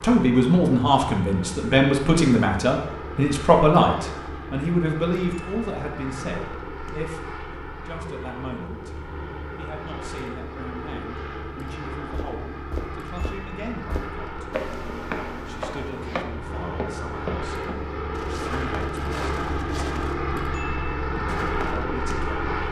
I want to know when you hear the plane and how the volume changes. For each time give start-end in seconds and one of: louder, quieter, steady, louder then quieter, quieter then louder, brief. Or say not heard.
0.0-22.6 louder.